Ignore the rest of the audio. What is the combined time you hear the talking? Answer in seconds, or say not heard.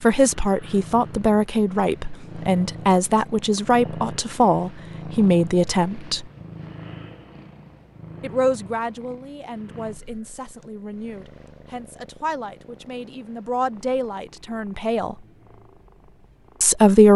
14 s.